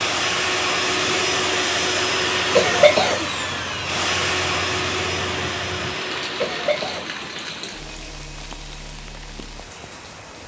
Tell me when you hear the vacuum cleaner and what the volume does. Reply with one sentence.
The vacuum cleaner can be heard from 0.0 to 10.4 s, getting quieter.